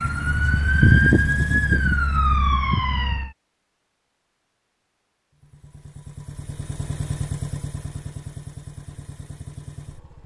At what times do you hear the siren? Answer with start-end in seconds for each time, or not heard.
0.0-3.3.